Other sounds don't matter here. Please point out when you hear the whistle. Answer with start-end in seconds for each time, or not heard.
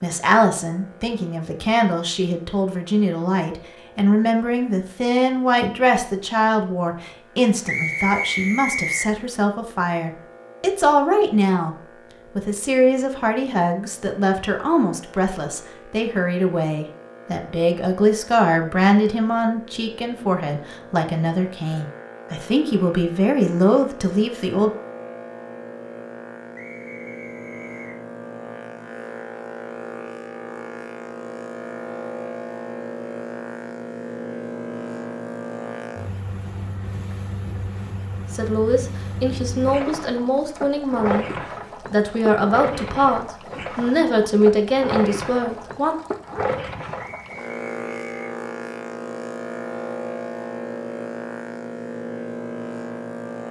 7.7-9.2, 26.6-28.0, 47.0-48.4.